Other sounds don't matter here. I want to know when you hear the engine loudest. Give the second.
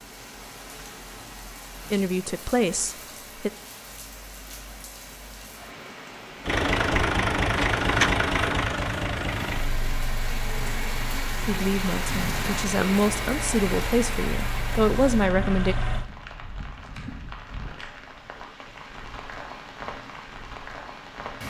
8 s.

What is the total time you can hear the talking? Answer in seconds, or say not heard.
6 s.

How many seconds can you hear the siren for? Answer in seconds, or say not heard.
not heard.